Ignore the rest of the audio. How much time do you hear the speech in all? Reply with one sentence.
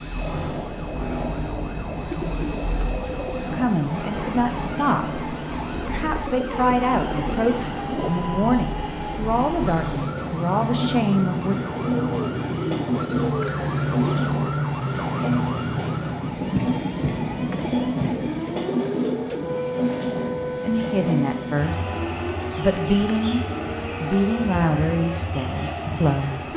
You can hear the speech for 14 seconds altogether.